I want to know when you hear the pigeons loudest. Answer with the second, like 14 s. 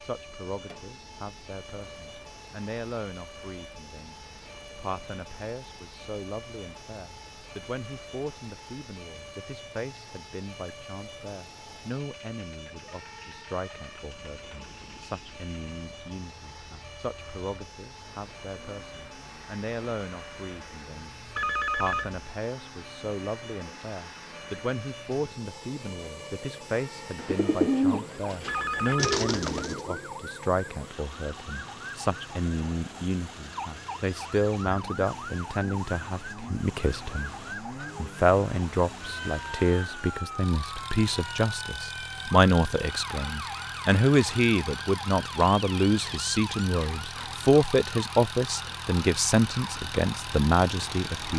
28 s.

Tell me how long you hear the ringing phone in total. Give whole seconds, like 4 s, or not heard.
2 s.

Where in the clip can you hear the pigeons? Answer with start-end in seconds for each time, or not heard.
27.1-30.1.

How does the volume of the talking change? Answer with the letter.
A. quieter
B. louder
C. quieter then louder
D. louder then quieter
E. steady
B.